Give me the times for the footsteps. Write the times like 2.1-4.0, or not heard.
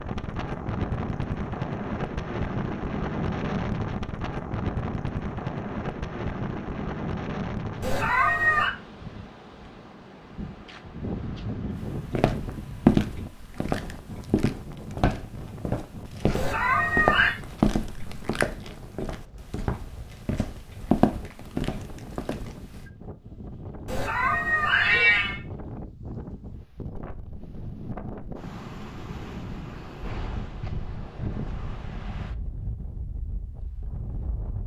11.8-22.8.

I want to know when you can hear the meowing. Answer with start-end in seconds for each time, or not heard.
7.8-8.7, 16.3-17.4, 23.9-25.4.